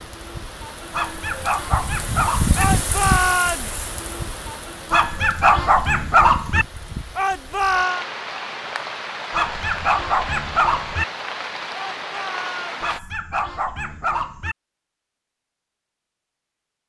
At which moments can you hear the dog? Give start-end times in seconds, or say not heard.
0.9-2.6, 4.9-6.7, 9.3-11.1, 12.8-14.6.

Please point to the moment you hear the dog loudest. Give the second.
6 s.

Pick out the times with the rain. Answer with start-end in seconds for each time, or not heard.
0.0-13.0.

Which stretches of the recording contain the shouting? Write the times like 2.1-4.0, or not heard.
2.5-3.8, 7.2-8.1, 11.7-13.1.